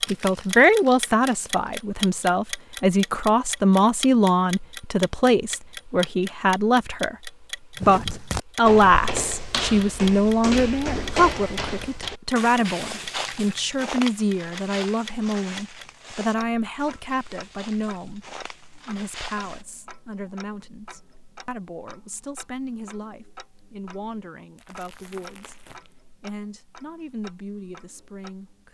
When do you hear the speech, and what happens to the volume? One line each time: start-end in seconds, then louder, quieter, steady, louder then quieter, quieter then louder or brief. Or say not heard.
0.1-25.6 quieter
26.1-28.6 brief.